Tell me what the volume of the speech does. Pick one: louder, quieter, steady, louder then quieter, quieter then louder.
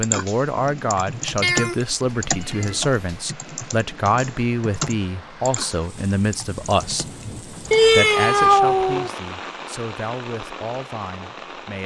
quieter.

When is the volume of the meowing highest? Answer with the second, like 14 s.
8 s.